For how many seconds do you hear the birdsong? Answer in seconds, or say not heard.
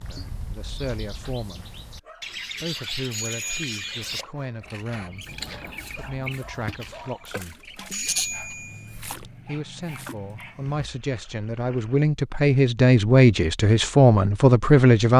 9 s.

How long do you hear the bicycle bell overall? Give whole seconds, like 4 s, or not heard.
2 s.